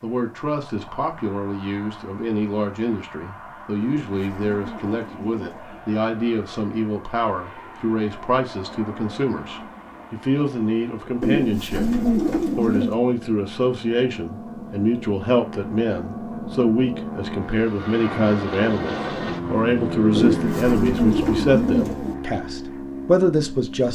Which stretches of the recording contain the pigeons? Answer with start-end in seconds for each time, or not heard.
3.8-5.8, 11.2-12.9, 20.1-22.1.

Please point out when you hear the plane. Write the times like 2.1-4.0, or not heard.
0.0-23.9.